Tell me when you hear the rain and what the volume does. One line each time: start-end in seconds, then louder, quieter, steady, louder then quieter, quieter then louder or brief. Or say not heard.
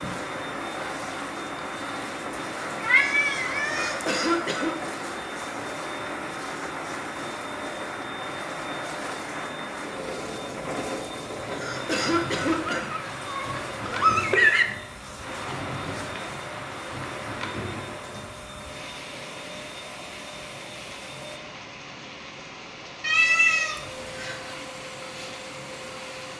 0.0-26.3 quieter.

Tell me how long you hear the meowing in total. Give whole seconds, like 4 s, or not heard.
4 s.